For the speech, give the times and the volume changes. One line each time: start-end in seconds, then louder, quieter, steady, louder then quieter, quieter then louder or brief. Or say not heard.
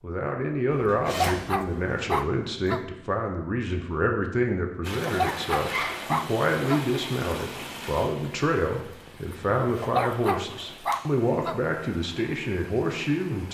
0.0-13.4 steady.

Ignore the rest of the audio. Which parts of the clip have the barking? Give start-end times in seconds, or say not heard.
1.1-2.9, 5.0-6.8, 9.8-11.6.